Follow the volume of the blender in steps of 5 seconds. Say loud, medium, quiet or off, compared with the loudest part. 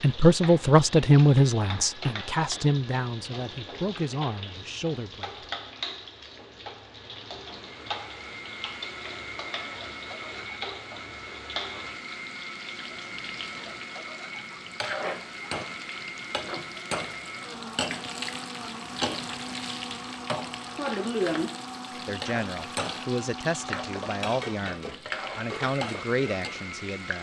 off, loud, loud, loud, loud, loud.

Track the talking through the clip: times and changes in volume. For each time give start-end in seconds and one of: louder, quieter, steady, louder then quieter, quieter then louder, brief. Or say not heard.
0.0-5.5 quieter
22.1-27.1 steady.